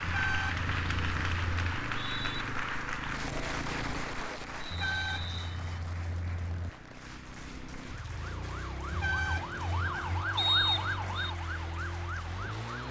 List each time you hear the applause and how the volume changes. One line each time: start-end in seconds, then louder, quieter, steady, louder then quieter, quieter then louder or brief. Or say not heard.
0.0-12.8 quieter.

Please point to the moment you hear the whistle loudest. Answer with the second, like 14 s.
11 s.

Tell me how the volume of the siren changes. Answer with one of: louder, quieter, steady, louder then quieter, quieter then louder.
louder then quieter.